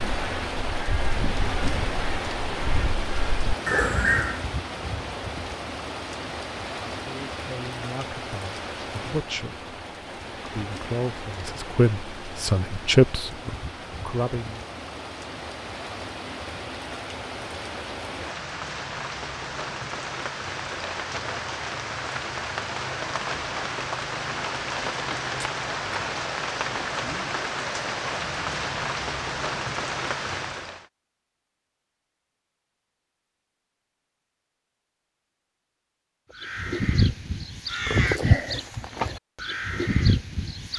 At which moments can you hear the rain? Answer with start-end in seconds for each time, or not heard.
0.0-30.9.